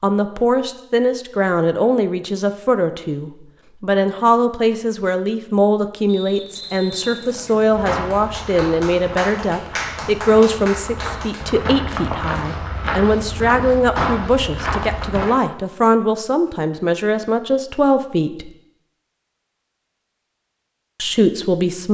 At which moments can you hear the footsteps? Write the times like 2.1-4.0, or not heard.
7.7-15.3.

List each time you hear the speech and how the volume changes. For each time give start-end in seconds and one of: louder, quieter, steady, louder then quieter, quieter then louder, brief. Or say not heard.
0.0-18.5 steady
21.0-21.8 brief.